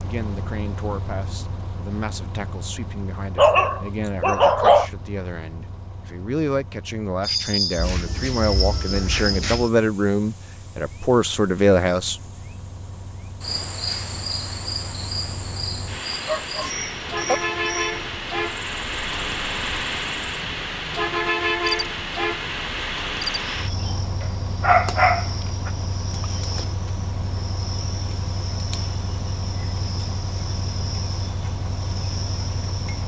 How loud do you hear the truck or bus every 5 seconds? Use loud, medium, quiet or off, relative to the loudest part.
medium, quiet, quiet, loud, loud, medium, medium.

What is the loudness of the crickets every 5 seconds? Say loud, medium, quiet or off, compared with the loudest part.
off, loud, medium, medium, medium, medium, medium.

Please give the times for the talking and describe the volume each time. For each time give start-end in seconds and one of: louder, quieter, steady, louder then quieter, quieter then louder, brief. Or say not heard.
0.0-12.2 louder.